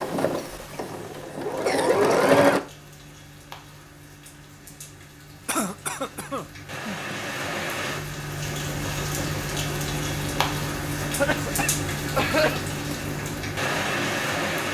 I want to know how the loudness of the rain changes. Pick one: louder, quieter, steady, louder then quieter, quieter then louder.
louder.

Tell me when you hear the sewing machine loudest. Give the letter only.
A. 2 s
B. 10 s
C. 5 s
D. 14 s
A.